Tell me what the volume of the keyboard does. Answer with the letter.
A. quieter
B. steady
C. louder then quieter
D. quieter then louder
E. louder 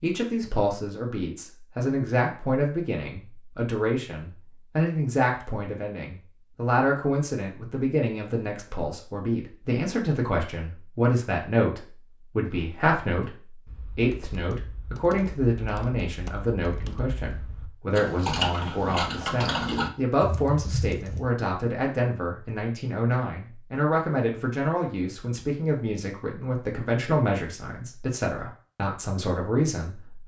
E.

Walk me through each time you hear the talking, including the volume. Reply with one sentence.
You can hear the talking from 0.0 to 30.2 s, at a steady volume.